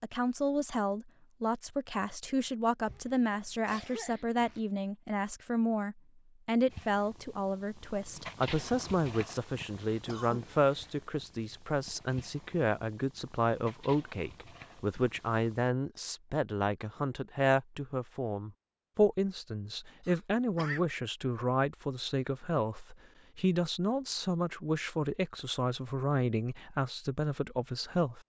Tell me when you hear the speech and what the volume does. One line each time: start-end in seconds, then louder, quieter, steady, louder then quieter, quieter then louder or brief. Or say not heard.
0.0-28.2 steady.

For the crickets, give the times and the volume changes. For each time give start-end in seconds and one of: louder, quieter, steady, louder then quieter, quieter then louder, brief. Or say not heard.
not heard.